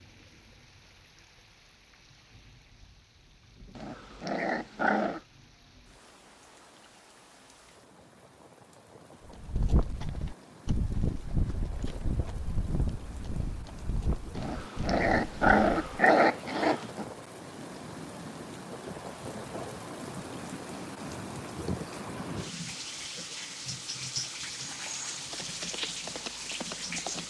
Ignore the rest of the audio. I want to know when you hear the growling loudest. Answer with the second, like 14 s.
16 s.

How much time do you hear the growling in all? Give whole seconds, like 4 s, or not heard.
4 s.